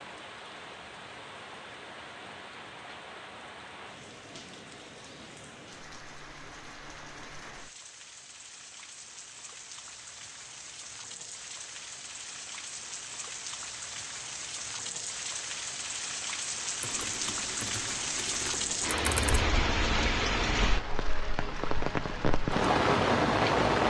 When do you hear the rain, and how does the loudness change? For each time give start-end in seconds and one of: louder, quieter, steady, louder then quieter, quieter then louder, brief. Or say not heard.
0.0-23.8 louder.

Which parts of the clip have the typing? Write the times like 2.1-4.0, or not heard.
16.8-19.4.